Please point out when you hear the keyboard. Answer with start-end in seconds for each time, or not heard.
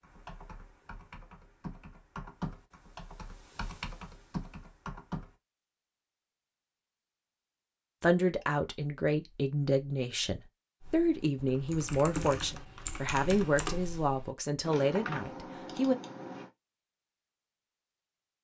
0.0-5.3, 10.8-16.5.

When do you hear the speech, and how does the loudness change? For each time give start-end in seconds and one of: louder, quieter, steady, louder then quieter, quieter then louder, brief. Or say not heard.
8.0-15.9 steady.